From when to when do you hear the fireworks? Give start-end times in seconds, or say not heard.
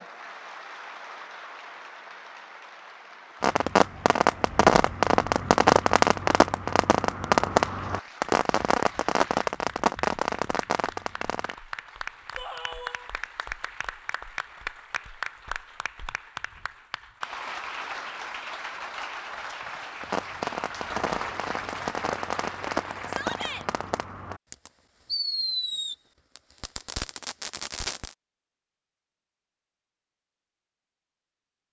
3.4-11.6, 20.0-28.1.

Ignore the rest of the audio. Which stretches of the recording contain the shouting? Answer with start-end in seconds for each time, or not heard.
12.3-13.1, 23.1-23.6.